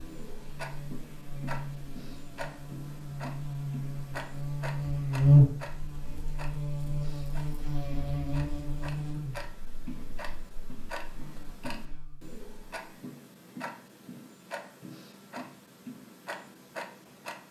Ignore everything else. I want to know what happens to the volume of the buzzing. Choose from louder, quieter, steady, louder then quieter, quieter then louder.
louder then quieter.